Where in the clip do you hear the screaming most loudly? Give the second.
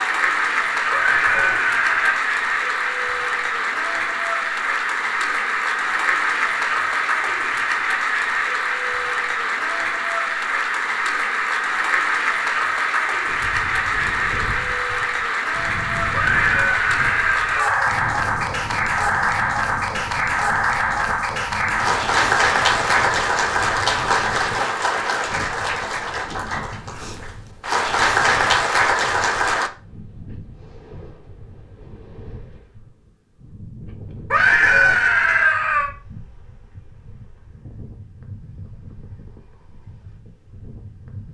35 s.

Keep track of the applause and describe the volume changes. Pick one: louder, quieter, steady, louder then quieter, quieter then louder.
steady.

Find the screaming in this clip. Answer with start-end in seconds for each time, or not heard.
0.9-2.2, 16.1-17.9, 34.3-35.9.